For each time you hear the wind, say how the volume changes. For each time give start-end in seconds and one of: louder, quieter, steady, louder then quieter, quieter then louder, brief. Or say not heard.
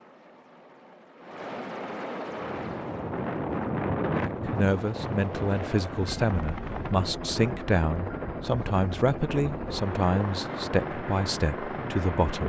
2.2-12.4 quieter.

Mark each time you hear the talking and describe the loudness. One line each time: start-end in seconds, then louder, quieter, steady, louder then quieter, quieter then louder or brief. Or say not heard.
4.2-12.4 steady.